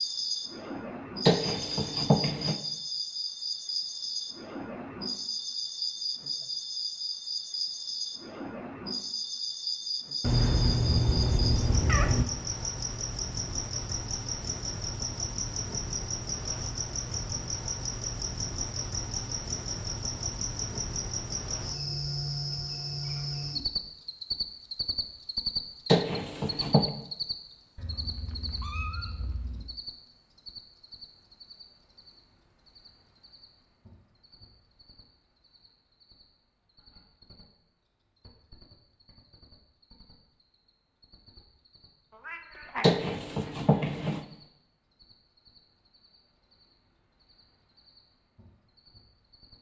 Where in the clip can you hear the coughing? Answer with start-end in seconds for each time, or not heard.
1.2-2.5, 25.9-26.9, 42.8-44.2.